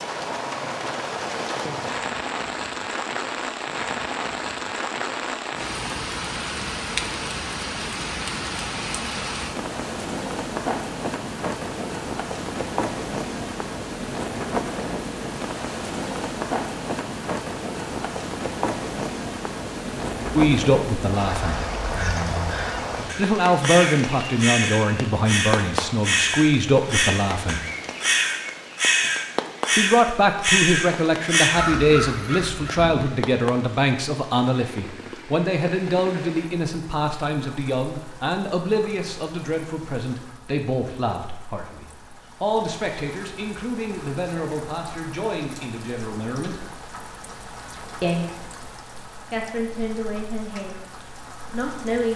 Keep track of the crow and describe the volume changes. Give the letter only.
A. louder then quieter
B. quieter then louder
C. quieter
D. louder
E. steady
D.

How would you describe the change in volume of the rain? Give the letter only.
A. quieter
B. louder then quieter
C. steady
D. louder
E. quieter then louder
A.